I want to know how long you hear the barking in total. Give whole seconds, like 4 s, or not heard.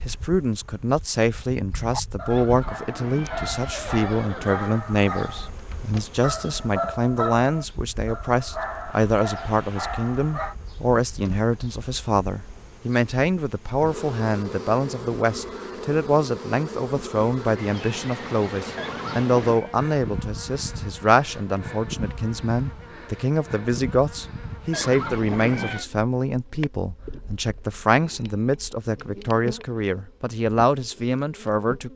9 s.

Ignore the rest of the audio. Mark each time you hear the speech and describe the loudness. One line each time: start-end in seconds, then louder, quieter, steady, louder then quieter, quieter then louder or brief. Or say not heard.
0.1-31.9 steady.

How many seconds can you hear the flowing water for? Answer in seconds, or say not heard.
not heard.